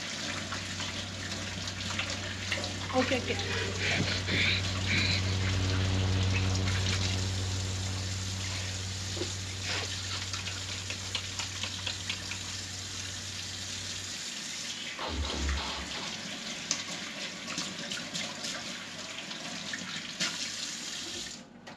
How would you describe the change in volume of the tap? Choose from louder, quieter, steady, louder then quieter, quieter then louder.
steady.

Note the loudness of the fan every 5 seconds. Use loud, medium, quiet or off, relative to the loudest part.
medium, loud, quiet, off, off.